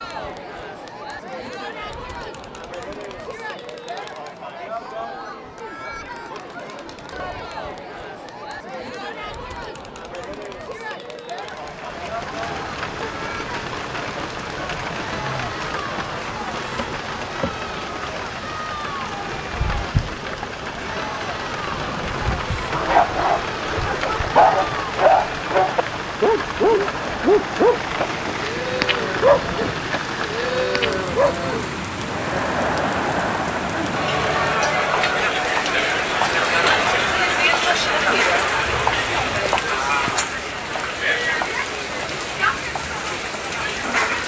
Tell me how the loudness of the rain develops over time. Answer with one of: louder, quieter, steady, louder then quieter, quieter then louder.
steady.